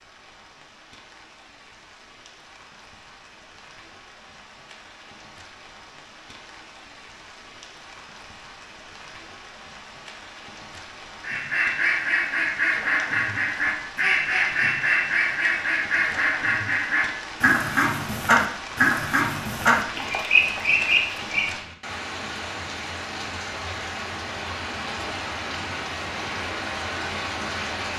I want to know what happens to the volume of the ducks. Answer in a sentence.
The volume of the ducks stays about the same.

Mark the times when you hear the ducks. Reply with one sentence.
You can hear the ducks from 11.2 to 21.4 s.